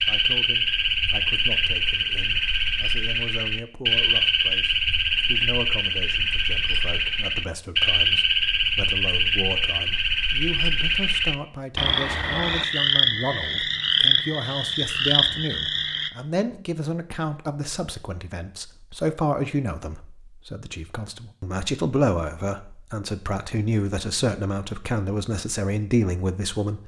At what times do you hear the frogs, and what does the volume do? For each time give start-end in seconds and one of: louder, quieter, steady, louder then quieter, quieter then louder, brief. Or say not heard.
0.0-16.1 steady.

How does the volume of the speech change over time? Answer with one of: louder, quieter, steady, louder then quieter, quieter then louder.
louder.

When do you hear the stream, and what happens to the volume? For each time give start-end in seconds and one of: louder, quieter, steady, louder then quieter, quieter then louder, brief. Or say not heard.
not heard.